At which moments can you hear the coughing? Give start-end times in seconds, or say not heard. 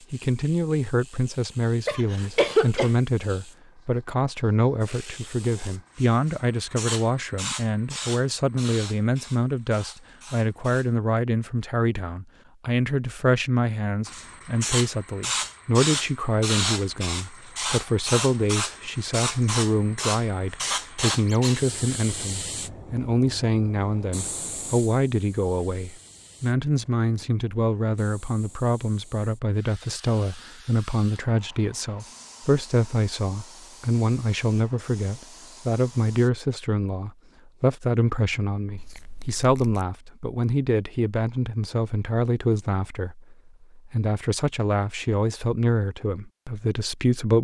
1.9-2.9.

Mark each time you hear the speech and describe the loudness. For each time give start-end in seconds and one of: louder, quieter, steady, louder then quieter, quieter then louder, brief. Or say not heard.
0.1-47.3 steady.